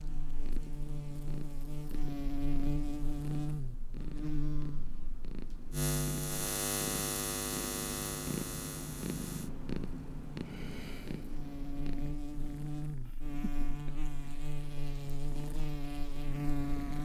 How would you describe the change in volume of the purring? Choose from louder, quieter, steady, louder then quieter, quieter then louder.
louder then quieter.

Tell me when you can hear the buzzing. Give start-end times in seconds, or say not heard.
0.0-17.0.